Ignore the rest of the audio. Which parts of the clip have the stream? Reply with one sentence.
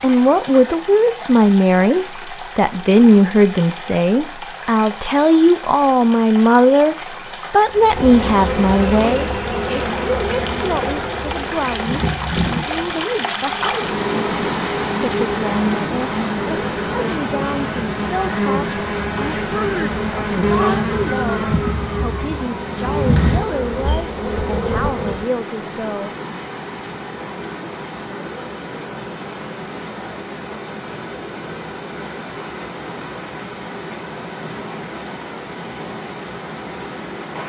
The stream can be heard from 0.0 to 37.4 s.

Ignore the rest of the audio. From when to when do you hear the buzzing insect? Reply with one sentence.
You can hear the buzzing insect from 7.7 to 25.2 s.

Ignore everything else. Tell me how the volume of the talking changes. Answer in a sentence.
The loudness of the talking goes down.